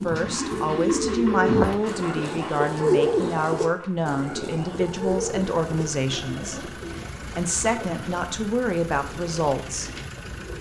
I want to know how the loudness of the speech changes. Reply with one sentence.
The volume of the speech stays about the same.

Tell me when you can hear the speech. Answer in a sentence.
You can hear the speech from 0.0 to 9.9 s.